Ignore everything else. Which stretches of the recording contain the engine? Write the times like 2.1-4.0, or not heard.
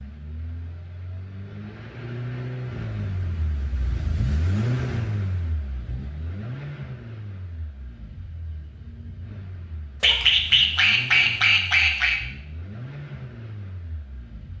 0.0-14.5.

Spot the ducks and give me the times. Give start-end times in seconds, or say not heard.
10.0-12.2.